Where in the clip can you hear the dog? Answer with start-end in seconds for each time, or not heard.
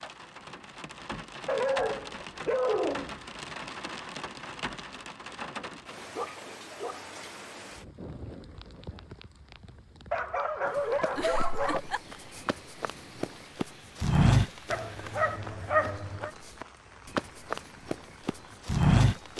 1.4-3.2, 6.2-7.0, 10.1-11.8, 14.7-16.3.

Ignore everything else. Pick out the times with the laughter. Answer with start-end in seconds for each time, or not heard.
11.2-12.0.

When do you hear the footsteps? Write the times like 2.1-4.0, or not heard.
10.7-19.3.